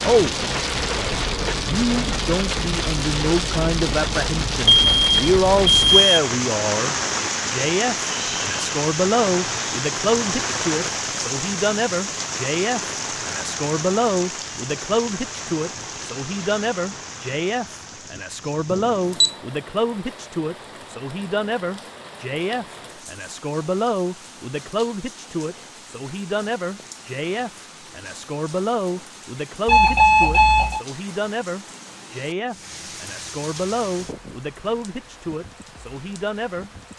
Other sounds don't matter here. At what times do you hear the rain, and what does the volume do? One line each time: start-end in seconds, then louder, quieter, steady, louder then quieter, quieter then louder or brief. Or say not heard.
0.0-36.9 quieter.